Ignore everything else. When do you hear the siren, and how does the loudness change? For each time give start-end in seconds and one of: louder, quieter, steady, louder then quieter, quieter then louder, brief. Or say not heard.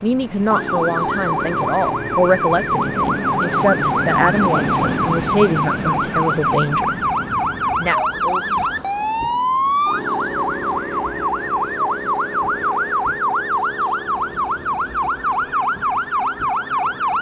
0.0-17.1 steady.